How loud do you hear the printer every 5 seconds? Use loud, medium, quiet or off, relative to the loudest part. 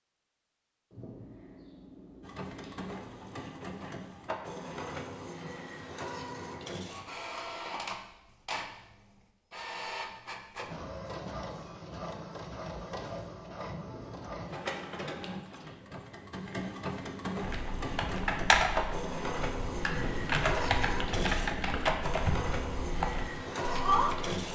medium, medium, medium, loud, loud.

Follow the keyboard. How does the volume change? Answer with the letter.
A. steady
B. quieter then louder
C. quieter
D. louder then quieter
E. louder
B.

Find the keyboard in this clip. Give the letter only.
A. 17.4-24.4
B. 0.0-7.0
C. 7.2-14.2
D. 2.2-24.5
A.